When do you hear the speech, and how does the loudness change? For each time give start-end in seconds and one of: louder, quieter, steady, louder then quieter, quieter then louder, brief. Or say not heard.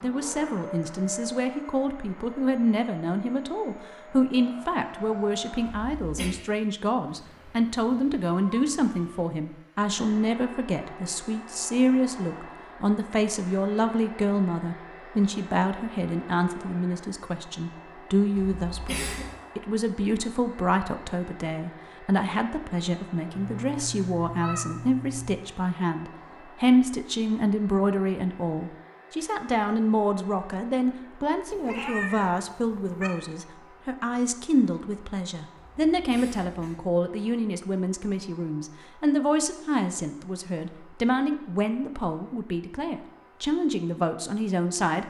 0.0-45.0 steady.